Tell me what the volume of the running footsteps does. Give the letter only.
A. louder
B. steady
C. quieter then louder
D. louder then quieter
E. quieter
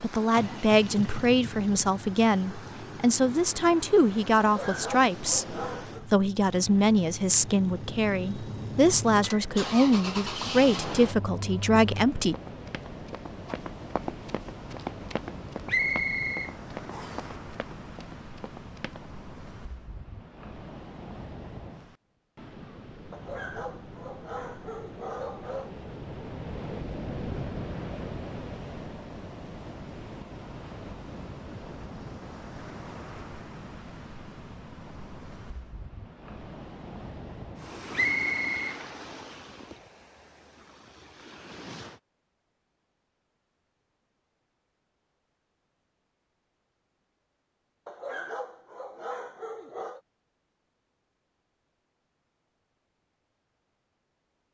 D.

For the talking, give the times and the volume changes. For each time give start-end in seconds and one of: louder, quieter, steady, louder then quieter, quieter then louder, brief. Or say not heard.
0.0-12.3 steady.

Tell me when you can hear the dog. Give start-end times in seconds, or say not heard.
4.4-6.0, 23.1-25.7, 47.9-50.0.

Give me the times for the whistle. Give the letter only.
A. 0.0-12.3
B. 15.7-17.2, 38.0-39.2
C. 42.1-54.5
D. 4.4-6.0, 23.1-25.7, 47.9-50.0
B.